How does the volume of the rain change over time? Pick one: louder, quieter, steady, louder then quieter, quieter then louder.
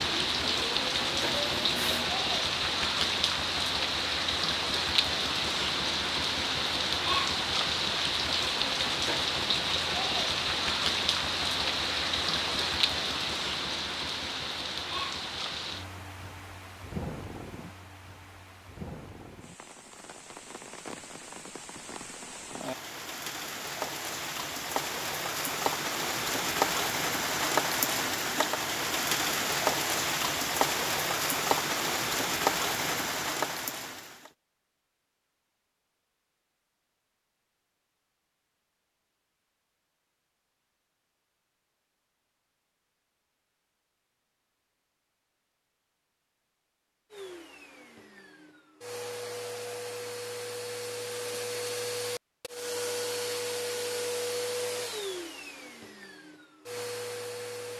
quieter then louder.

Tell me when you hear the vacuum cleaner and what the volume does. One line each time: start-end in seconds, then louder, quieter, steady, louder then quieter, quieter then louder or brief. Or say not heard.
0.0-2.1 brief
47.1-57.7 louder then quieter.